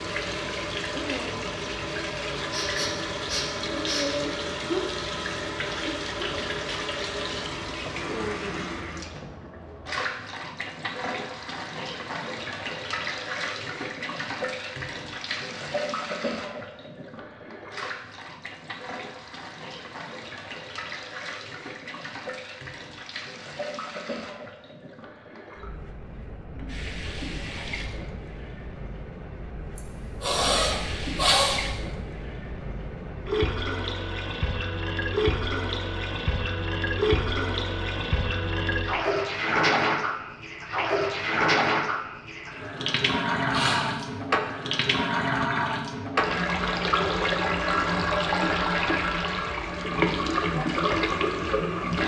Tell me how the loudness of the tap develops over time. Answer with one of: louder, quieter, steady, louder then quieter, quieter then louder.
quieter then louder.